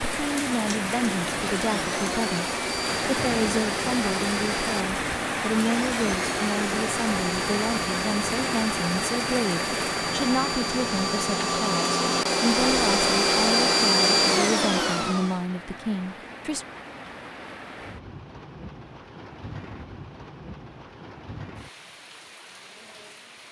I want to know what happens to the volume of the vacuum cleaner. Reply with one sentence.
The volume of the vacuum cleaner goes up.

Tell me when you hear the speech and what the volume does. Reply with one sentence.
You can hear the speech from 0.2 to 16.6 s, at a steady volume.